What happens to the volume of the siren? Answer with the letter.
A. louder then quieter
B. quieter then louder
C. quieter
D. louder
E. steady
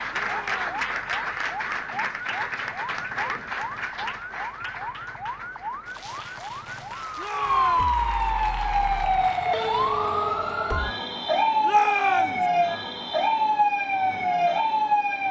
D.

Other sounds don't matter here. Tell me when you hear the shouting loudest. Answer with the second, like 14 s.
12 s.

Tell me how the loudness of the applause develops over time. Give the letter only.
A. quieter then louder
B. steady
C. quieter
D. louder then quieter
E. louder
C.